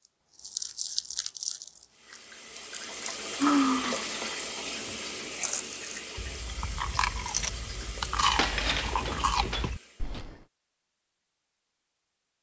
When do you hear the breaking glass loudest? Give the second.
9 s.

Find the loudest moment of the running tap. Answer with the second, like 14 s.
4 s.